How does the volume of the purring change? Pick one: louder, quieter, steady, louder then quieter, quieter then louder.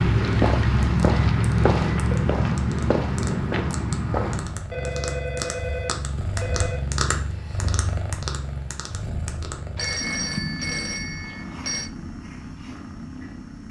louder then quieter.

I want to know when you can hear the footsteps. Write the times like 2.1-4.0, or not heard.
0.0-4.6.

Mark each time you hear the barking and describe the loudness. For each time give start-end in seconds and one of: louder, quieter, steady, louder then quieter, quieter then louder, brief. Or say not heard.
not heard.